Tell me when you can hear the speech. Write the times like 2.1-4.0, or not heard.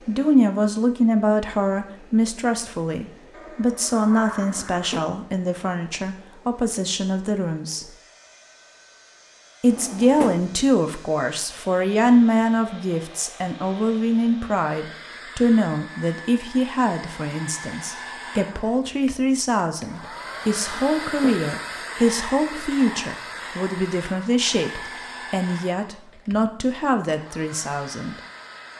0.1-7.9, 9.6-28.2.